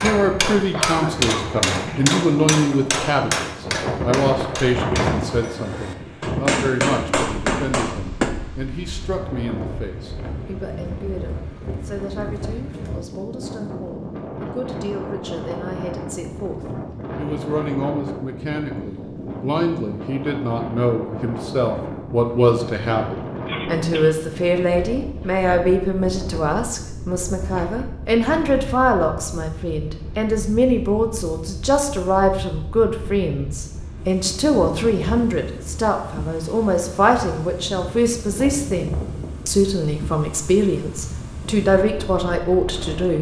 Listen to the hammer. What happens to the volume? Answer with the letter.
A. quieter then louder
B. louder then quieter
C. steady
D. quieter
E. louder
A.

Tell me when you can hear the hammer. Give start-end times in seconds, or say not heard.
0.0-8.3.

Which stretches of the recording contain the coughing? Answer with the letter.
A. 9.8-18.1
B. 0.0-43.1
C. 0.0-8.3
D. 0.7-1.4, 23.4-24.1
D.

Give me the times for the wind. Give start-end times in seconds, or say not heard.
0.0-43.1.